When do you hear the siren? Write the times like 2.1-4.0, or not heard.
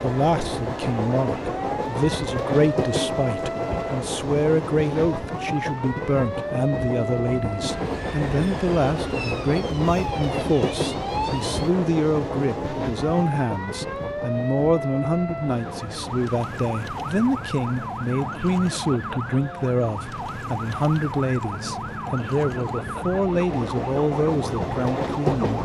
0.0-25.6.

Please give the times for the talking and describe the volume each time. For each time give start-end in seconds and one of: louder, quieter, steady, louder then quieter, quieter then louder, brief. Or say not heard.
0.0-25.6 steady.